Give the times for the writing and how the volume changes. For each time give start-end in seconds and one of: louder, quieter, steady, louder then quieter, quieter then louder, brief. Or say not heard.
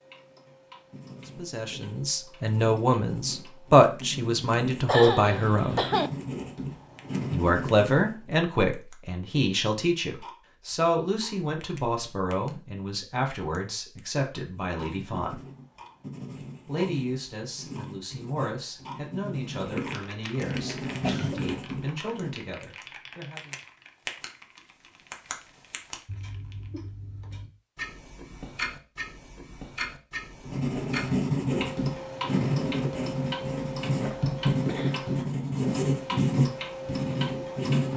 0.2-8.2 louder
14.4-22.5 louder
30.4-37.9 steady.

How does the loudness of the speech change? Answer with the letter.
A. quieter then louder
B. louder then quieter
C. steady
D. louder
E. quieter
E.